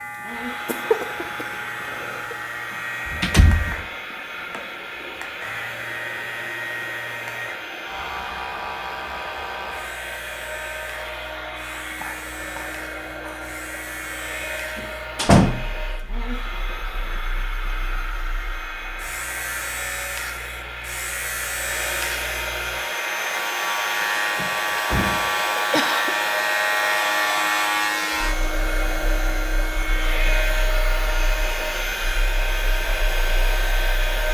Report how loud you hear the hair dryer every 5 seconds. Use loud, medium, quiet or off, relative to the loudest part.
medium, medium, medium, medium, loud, loud, loud.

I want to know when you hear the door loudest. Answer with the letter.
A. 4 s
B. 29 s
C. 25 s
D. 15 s
D.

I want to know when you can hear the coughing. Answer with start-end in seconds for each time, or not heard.
0.7-2.4, 11.8-13.6, 25.6-26.1.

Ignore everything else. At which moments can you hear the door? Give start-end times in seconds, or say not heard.
3.0-3.8, 14.8-15.6, 24.4-25.3.